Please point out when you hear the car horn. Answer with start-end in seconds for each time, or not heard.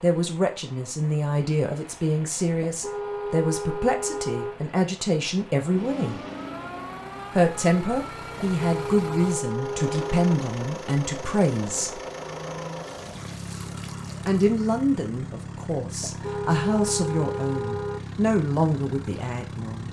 2.6-4.5, 8.4-10.3, 16.0-18.0.